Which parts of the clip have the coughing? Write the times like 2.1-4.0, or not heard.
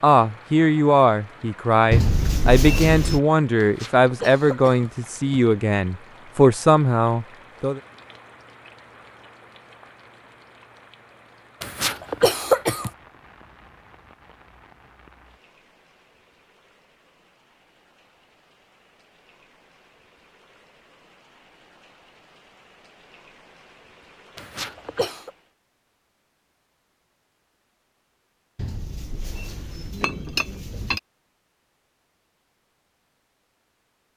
3.5-5.4, 11.6-12.9, 24.4-25.3.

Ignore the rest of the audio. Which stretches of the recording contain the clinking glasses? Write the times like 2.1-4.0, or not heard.
1.9-3.2, 28.6-31.0.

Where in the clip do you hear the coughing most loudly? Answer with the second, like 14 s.
12 s.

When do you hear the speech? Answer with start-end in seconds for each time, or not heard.
0.0-7.8.